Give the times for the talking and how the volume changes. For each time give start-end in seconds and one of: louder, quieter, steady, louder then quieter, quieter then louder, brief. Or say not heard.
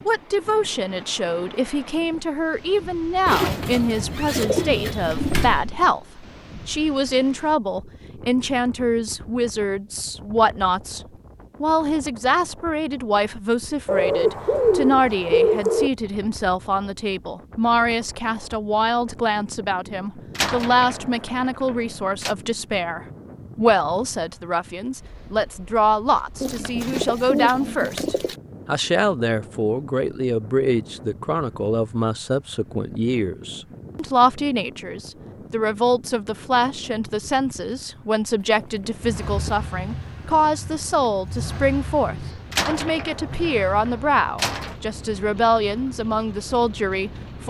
0.1-11.0 steady
11.6-47.4 steady.